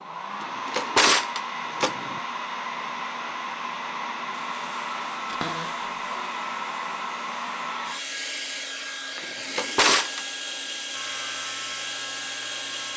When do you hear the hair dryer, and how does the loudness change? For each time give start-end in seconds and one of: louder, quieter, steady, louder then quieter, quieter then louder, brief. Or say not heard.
0.0-12.9 steady.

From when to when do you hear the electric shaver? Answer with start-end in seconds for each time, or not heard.
4.3-8.0, 10.9-12.9.